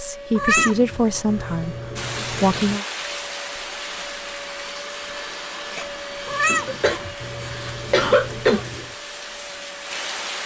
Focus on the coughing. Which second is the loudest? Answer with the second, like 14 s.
8 s.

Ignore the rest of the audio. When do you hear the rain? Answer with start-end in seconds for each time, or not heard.
1.9-10.4.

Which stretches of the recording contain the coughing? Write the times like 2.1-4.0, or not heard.
6.7-8.7.